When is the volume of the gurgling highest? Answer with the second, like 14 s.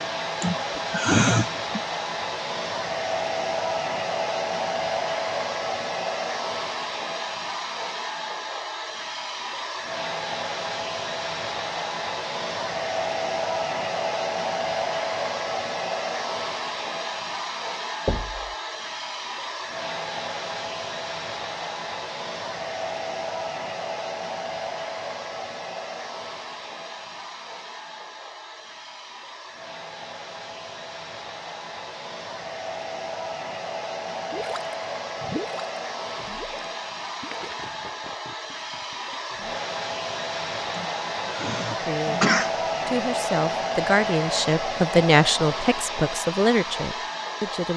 35 s.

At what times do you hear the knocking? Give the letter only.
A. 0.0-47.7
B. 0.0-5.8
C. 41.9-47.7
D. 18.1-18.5
D.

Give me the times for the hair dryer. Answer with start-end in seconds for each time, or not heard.
0.0-47.7.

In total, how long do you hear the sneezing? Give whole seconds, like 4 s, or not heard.
3 s.